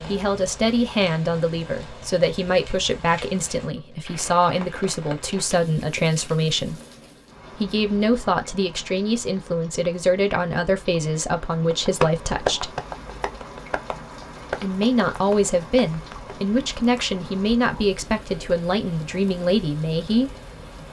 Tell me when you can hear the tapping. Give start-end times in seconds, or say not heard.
11.7-17.1.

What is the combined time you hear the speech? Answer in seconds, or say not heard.
18 s.